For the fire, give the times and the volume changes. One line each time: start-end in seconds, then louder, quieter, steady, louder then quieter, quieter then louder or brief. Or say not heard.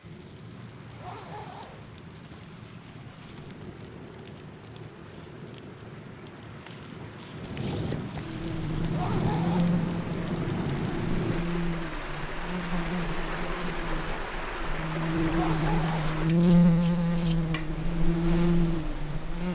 0.0-11.4 louder.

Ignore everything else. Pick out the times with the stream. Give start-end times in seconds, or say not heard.
0.0-16.4.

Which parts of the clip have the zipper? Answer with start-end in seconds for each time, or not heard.
0.8-1.9, 8.8-9.8, 15.2-16.2.